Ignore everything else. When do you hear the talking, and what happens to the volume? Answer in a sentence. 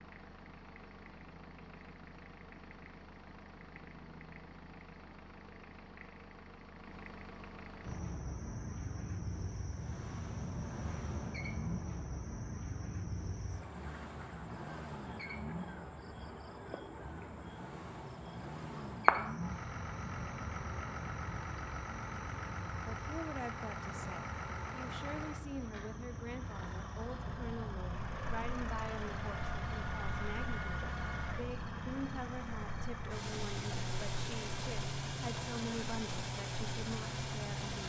You can hear the talking from 22.9 to 37.8 s, at a steady volume.